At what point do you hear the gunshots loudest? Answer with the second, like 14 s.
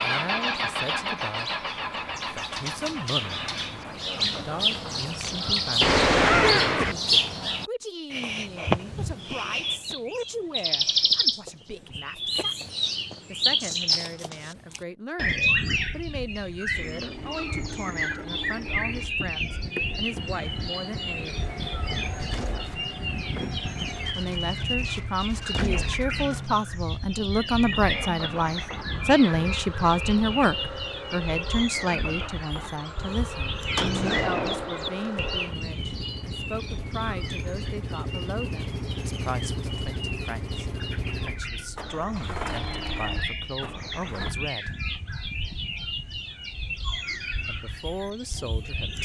6 s.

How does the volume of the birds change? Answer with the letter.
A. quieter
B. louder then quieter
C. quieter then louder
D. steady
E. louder
A.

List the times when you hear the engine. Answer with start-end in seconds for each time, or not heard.
0.0-5.1, 16.7-44.4.